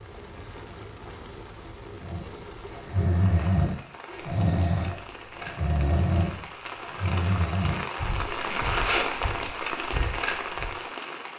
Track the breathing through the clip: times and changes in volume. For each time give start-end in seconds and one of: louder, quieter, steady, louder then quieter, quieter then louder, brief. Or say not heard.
2.0-10.8 quieter.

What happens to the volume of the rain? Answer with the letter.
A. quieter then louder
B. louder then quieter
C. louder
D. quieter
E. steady
C.